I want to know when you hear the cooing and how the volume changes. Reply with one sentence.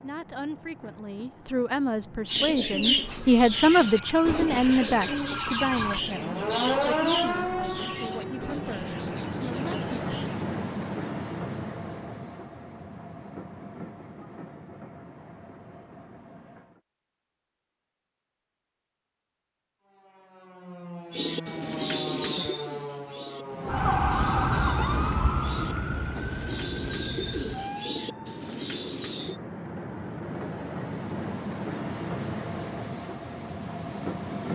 The cooing can be heard from 2.2 to 10.3 s, getting quieter; and from 21.1 to 29.4 s, getting quieter then louder.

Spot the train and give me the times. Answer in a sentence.
The train can be heard from 0.0 to 16.8 s and from 23.4 to 34.5 s.